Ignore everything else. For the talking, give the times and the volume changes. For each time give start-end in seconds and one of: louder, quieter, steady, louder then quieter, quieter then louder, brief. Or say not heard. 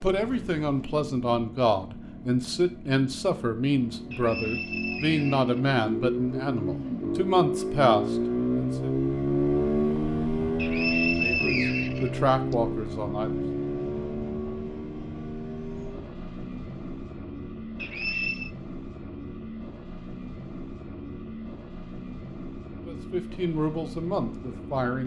0.0-8.8 steady
11.2-13.4 brief
22.9-25.0 brief.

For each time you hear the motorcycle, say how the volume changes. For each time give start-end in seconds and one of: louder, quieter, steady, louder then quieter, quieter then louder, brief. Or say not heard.
0.0-25.0 louder then quieter.